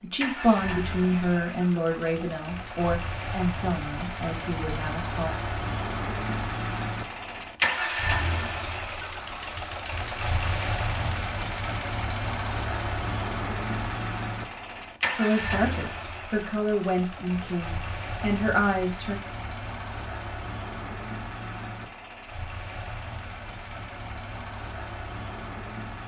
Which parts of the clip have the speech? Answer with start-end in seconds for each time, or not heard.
0.0-5.3, 15.1-19.2.